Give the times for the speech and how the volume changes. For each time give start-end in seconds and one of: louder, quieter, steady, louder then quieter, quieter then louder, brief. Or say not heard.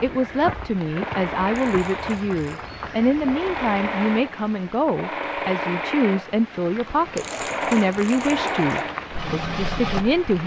0.0-10.4 steady.